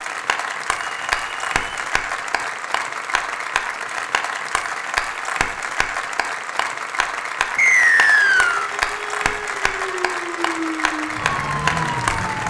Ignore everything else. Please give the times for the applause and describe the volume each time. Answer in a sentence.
The applause can be heard from 0.0 to 12.4 s, at a steady volume.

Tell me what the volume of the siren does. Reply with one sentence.
The loudness of the siren goes up.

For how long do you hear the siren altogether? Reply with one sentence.
The siren can be heard for 4 seconds in total.